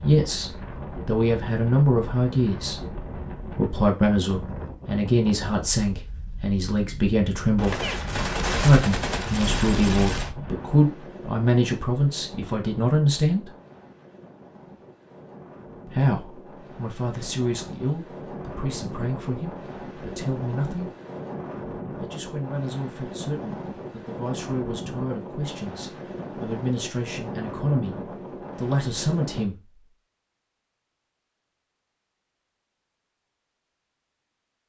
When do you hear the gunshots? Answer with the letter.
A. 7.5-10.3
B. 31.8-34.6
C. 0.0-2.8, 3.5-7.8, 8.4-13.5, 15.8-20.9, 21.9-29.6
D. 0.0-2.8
A.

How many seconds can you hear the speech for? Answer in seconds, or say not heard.
25 s.